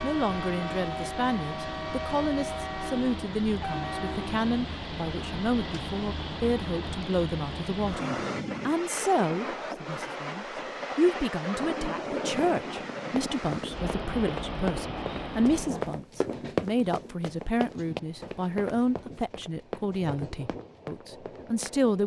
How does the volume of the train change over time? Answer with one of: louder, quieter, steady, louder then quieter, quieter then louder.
quieter.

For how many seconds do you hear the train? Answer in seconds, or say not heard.
22 s.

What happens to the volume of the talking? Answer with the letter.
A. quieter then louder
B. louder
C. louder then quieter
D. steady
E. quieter
D.